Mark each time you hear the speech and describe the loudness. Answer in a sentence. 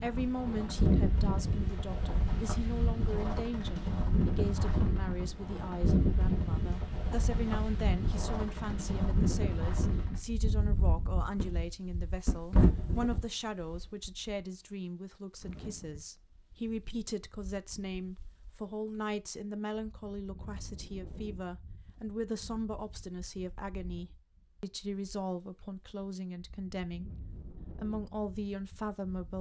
You can hear the speech from 0.0 to 27.1 s, at a steady volume; and briefly from 27.8 to 29.3 s.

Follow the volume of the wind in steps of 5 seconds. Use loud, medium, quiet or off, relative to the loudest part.
loud, loud, loud, quiet, quiet, quiet.